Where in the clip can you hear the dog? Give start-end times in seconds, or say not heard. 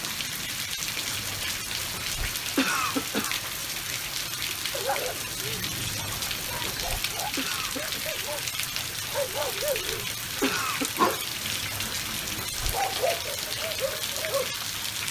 4.7-14.6.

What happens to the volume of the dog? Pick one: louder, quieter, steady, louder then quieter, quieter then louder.
louder.